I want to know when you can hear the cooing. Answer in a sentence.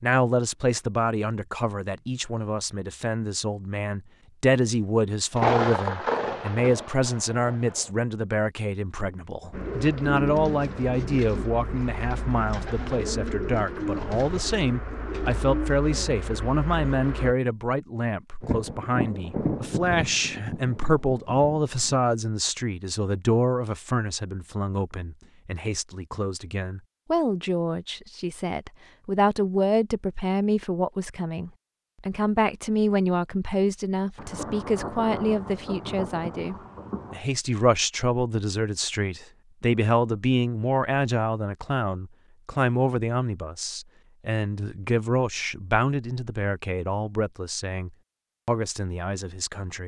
You can hear the cooing from 9.5 to 17.4 s.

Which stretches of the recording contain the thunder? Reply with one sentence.
The thunder can be heard from 5.3 to 7.9 s, from 18.4 to 22.0 s and from 34.1 to 37.2 s.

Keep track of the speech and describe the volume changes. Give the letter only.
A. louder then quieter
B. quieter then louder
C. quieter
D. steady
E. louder
D.